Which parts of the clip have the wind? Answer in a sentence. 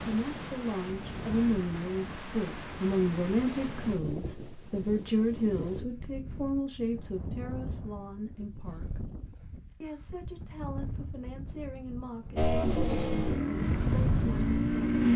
You can hear the wind from 0.0 to 14.9 s.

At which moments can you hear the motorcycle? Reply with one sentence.
The motorcycle can be heard from 12.3 to 15.1 s.